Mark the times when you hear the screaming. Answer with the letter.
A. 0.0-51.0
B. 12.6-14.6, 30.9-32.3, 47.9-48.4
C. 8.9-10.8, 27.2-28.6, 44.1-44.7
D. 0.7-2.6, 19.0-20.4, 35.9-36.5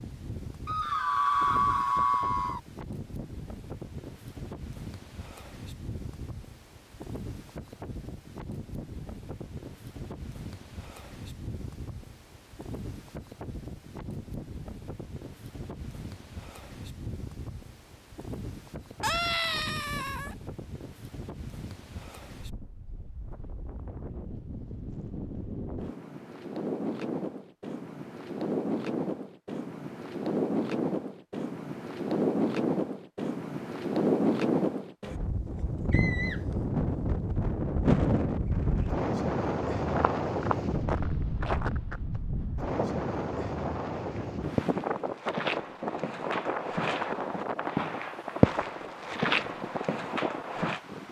D.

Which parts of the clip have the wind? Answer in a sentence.
The wind can be heard from 0.0 to 51.0 s.